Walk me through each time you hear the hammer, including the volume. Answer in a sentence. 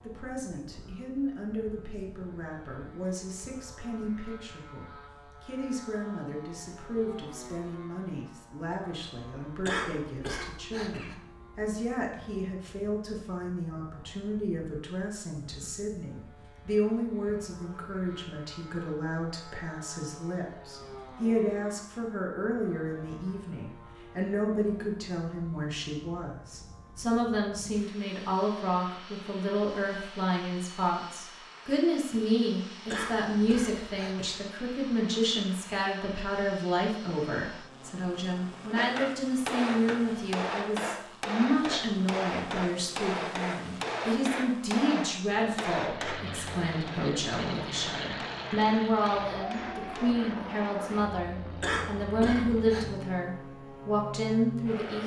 You can hear the hammer from 38.8 to 50.1 s, getting quieter.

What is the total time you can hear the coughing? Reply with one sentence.
You can hear the coughing for 4 seconds altogether.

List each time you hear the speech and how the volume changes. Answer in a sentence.
You can hear the speech from 0.0 to 55.0 s, getting louder.